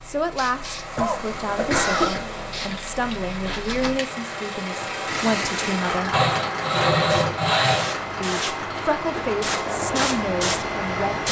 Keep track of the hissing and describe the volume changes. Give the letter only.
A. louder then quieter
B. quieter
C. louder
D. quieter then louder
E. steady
C.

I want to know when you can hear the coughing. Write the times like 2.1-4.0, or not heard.
0.9-2.2, 8.8-9.2.